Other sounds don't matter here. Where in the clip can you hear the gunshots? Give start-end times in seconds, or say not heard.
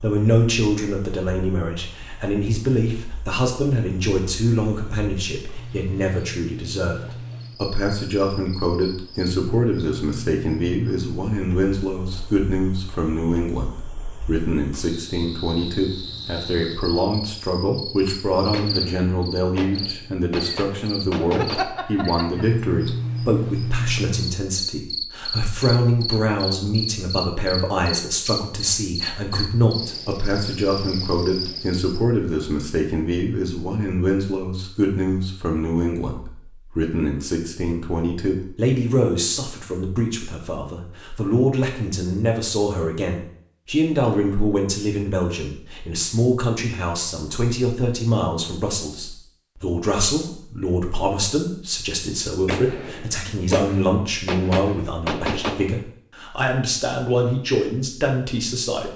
18.4-21.9, 52.3-55.8.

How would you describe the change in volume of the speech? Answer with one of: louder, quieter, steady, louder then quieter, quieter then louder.
steady.